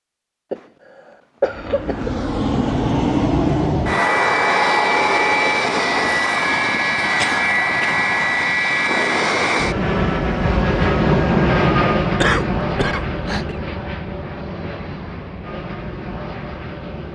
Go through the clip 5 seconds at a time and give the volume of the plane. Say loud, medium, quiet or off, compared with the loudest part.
loud, loud, loud, quiet.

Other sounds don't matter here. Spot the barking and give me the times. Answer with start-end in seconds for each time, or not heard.
not heard.